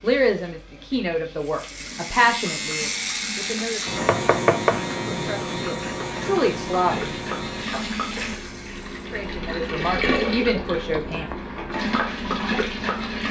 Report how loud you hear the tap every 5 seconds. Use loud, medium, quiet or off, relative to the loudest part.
quiet, medium, loud.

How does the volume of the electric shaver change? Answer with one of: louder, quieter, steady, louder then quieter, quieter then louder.
quieter.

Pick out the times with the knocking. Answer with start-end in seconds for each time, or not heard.
4.0-4.8, 10.9-11.6.